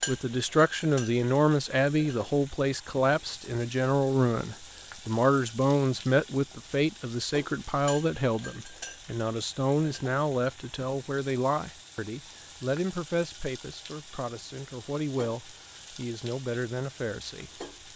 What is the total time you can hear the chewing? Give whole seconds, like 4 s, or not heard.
not heard.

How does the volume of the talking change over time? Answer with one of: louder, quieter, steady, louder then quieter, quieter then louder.
quieter.